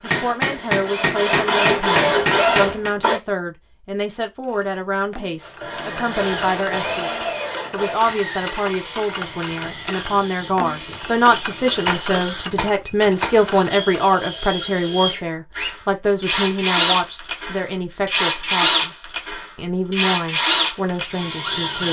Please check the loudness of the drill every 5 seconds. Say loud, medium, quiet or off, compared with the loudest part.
loud, medium, medium, loud, loud.